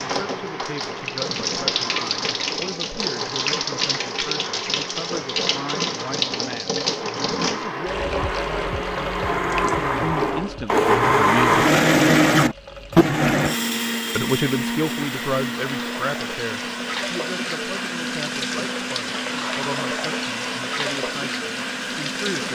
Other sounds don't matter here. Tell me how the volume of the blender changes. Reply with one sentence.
The volume of the blender goes up, then down.